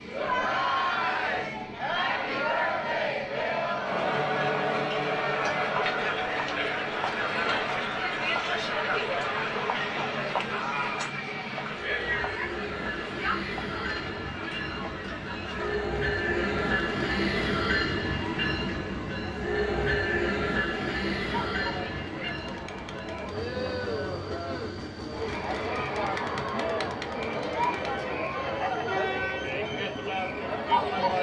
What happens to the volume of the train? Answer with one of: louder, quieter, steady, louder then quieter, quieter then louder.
louder then quieter.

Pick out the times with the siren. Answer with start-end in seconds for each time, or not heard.
not heard.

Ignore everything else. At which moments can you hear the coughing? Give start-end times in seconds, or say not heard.
not heard.